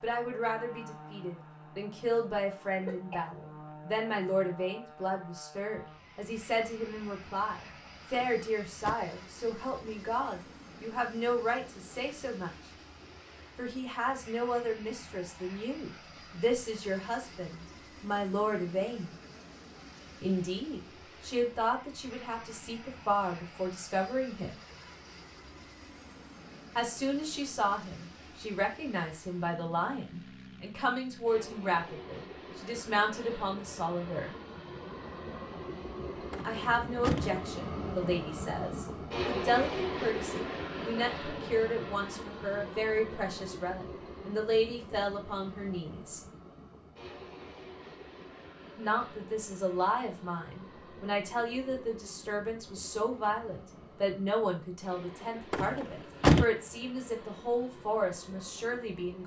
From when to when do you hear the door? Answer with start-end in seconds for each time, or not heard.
8.1-8.9, 36.3-37.5, 55.5-56.5.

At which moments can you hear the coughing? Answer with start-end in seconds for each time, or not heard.
2.7-3.2.